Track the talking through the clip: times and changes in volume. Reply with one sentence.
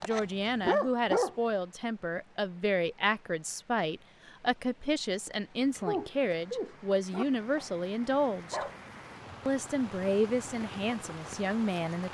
The talking can be heard from 0.0 to 8.7 s, at a steady volume; and briefly from 9.4 to 12.0 s.